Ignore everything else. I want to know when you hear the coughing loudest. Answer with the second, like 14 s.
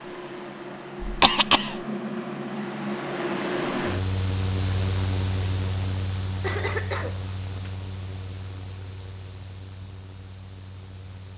1 s.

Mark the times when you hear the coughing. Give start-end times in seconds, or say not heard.
1.0-1.8, 6.4-7.7.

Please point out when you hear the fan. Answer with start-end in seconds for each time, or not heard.
0.0-11.3.